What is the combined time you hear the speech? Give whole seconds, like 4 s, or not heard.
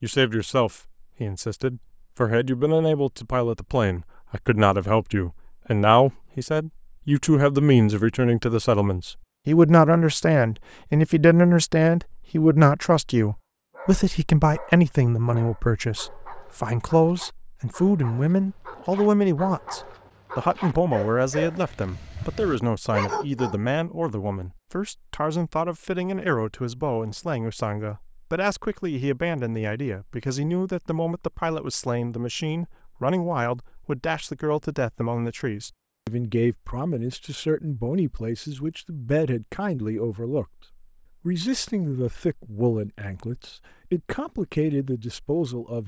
46 s.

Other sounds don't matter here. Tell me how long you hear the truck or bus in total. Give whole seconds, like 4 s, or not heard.
not heard.